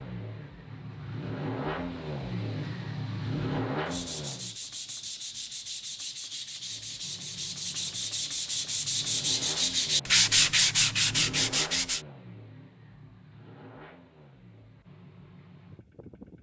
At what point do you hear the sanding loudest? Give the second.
10 s.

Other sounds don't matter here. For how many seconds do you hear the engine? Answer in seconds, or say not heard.
14 s.